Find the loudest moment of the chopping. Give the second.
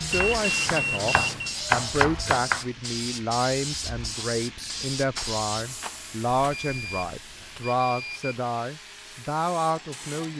2 s.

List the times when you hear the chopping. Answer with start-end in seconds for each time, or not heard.
0.0-2.6.